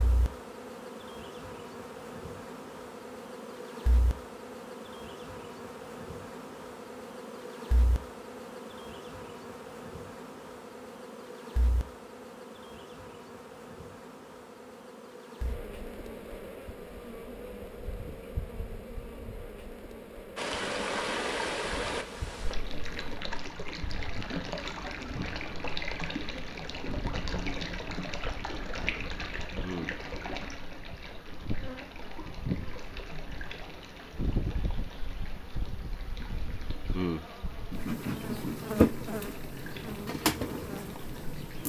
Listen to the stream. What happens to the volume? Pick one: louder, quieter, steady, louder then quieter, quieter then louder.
quieter.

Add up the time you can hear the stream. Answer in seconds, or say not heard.
21 s.